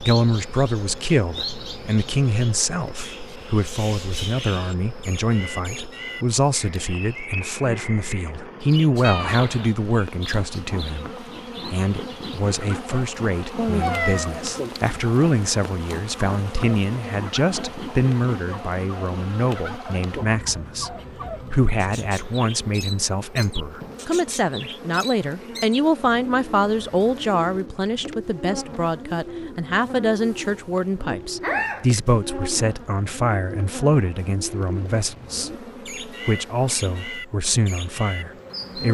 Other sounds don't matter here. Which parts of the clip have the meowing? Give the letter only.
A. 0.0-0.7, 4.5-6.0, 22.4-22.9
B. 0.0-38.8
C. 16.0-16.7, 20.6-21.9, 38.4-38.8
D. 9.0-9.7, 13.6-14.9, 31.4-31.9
D.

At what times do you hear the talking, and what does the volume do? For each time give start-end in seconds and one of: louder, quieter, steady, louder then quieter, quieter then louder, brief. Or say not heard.
0.0-38.8 steady.